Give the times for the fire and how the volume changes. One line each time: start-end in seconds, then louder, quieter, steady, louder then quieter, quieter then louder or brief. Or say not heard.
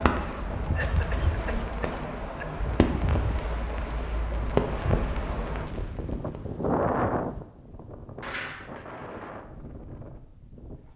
0.0-6.4 louder then quieter.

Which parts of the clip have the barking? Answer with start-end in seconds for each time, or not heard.
not heard.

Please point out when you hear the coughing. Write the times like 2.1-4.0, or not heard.
0.7-2.5, 8.2-8.9.